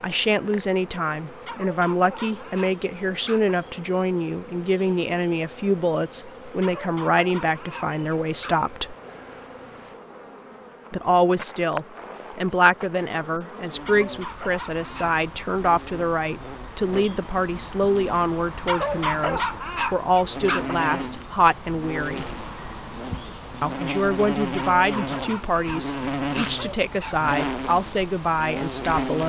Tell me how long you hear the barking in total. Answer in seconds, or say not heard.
10 s.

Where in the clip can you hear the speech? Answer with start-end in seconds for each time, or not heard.
0.0-8.9, 10.9-22.4, 23.6-29.2.